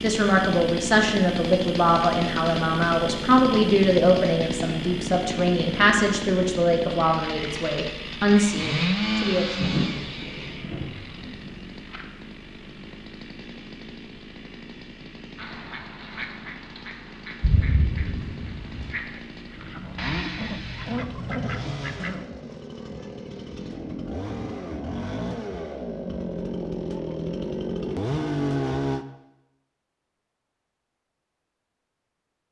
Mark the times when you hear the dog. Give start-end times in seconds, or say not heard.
not heard.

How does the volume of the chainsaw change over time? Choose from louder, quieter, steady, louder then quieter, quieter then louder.
quieter then louder.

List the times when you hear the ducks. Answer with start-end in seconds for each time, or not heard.
15.3-22.3.